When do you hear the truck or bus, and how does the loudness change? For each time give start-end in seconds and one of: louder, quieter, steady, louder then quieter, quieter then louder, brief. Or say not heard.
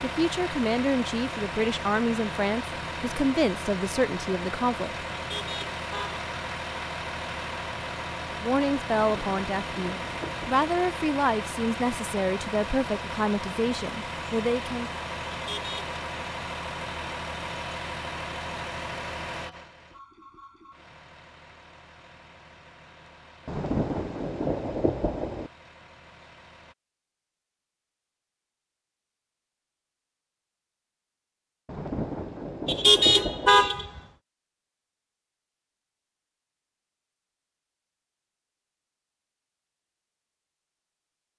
0.0-26.8 quieter.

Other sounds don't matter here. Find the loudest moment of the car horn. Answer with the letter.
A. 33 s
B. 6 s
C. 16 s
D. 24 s
A.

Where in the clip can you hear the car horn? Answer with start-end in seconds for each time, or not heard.
5.2-6.2, 15.3-15.9, 32.6-34.0.